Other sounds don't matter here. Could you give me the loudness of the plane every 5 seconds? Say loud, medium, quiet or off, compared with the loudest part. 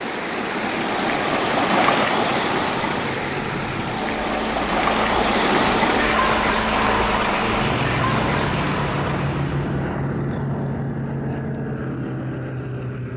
medium, loud, loud.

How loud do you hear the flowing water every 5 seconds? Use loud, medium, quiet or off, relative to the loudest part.
loud, loud, off.